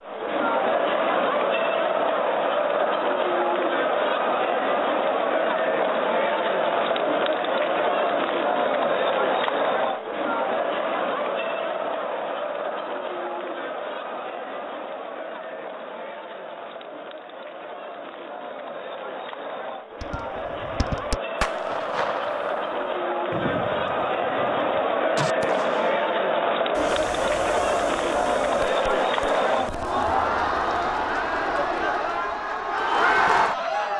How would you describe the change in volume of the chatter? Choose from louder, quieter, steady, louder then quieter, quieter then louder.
quieter then louder.